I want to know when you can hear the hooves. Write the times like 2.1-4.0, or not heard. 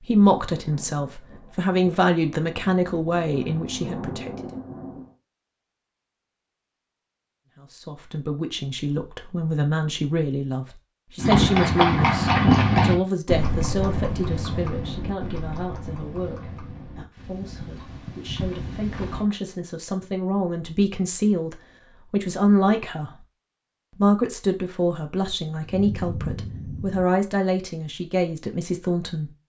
11.2-19.2.